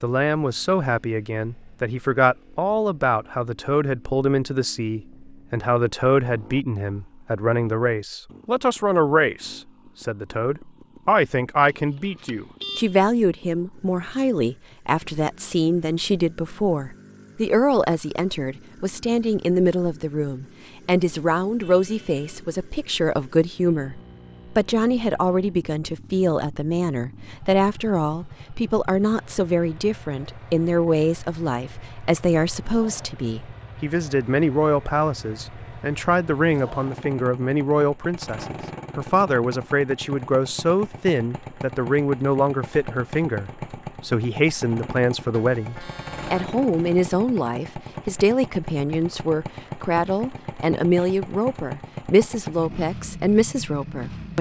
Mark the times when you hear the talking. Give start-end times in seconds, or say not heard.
0.0-54.3.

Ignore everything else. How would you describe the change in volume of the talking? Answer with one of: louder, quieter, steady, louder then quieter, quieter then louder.
steady.